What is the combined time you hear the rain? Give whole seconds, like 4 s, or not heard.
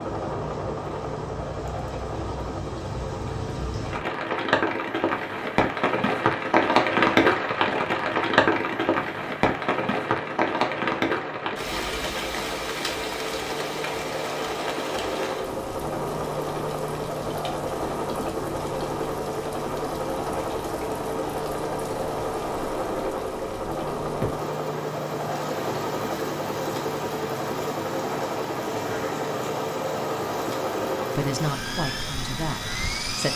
33 s.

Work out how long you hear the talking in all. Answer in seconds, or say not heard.
2 s.